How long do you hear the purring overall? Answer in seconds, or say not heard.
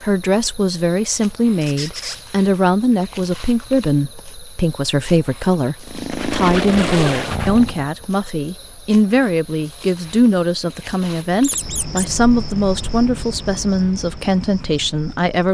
2 s.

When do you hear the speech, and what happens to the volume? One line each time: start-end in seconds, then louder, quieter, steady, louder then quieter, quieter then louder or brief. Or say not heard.
0.0-15.5 steady.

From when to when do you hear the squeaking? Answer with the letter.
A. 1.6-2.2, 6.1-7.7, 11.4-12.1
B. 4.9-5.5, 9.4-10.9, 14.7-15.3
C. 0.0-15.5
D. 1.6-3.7
A.